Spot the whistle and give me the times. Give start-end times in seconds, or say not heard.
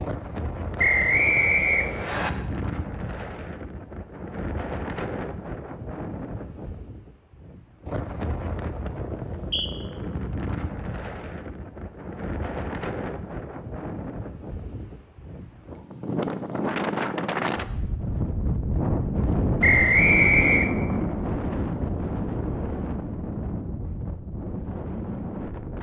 0.8-2.3, 9.2-9.7, 19.6-20.7.